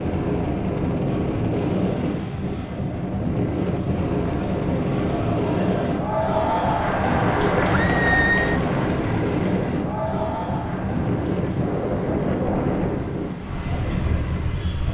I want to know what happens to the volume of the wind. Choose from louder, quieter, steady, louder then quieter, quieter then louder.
steady.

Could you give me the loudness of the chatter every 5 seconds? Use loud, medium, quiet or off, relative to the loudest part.
quiet, loud, medium.